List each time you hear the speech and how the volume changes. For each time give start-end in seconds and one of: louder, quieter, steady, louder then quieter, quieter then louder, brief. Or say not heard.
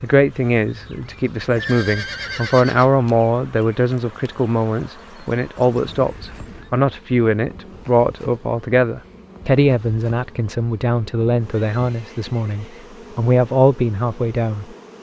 0.0-14.7 steady.